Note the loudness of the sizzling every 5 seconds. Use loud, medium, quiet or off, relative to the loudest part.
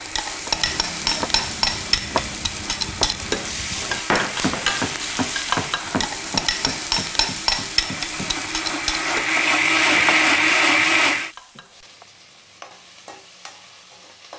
loud, loud, quiet.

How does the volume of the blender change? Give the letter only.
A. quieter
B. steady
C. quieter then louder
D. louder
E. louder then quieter
D.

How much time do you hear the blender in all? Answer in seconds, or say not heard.
11 s.